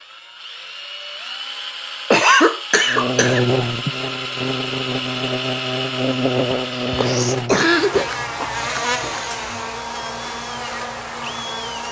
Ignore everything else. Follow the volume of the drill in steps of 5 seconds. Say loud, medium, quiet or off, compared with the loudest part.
loud, loud, medium.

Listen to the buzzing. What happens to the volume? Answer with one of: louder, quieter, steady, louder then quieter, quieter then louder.
quieter.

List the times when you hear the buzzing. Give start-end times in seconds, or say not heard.
2.9-11.8.